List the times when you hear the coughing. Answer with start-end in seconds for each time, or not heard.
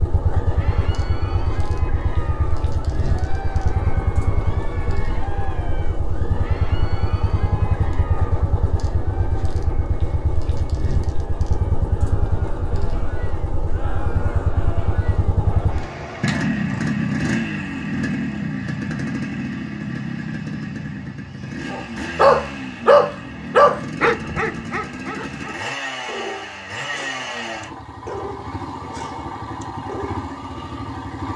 not heard.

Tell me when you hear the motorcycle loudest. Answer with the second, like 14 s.
17 s.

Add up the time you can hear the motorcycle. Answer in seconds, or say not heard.
31 s.